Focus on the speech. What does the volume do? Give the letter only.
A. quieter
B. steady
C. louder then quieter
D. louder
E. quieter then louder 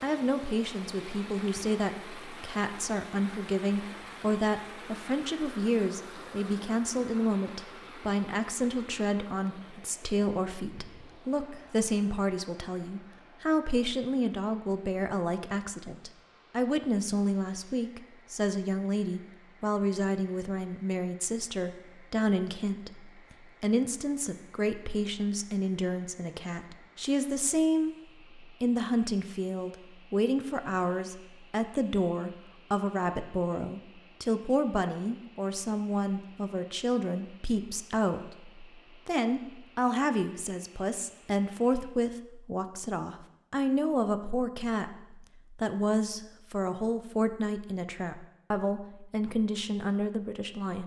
B.